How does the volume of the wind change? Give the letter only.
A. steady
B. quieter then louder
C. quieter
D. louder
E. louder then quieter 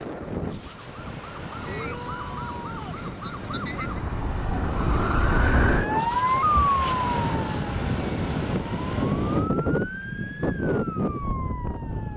D.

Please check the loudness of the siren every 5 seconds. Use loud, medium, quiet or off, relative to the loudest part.
medium, loud, quiet.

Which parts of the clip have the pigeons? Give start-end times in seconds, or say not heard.
not heard.